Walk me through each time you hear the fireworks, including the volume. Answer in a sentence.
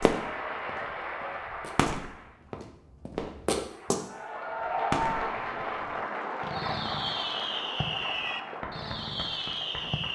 You can hear the fireworks briefly from 0.0 to 0.7 s; briefly from 1.4 to 2.5 s; briefly from 3.1 to 3.9 s; and from 4.6 to 10.1 s, getting louder.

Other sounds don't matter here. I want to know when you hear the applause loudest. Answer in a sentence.
The volume of the applause peaks at 5 seconds.